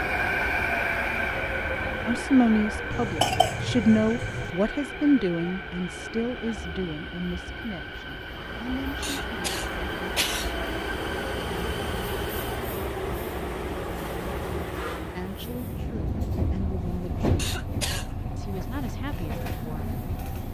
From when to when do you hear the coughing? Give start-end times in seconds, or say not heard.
2.9-4.5, 9.0-10.6, 17.4-18.1.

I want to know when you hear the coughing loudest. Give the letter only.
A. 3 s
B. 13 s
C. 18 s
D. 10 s
A.